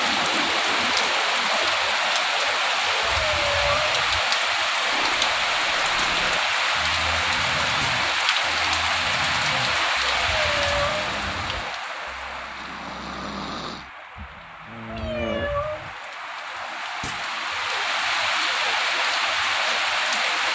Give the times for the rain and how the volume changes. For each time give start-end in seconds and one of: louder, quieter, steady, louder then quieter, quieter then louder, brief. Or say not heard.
0.0-20.5 quieter then louder.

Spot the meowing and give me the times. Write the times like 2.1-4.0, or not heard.
3.0-4.2, 10.2-11.7, 14.8-15.9.